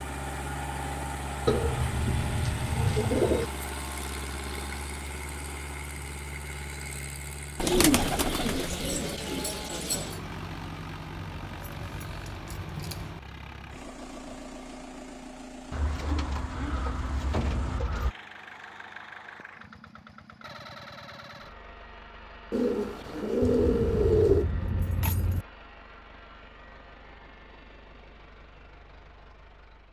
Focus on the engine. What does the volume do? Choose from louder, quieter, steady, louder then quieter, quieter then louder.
quieter.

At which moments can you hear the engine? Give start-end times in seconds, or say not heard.
0.0-29.8.